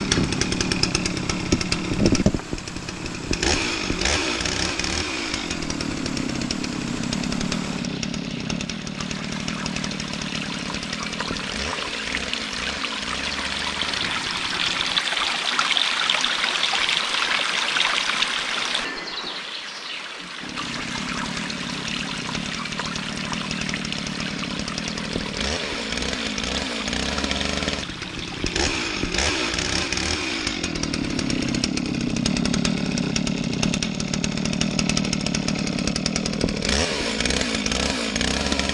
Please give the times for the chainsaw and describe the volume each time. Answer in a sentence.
The chainsaw can be heard from 0.0 to 15.1 s, getting quieter; and from 20.4 to 38.6 s, getting louder.